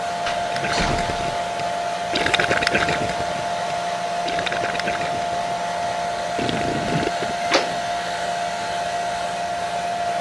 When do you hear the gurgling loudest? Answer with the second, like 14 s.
3 s.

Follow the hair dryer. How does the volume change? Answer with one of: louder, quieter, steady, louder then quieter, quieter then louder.
steady.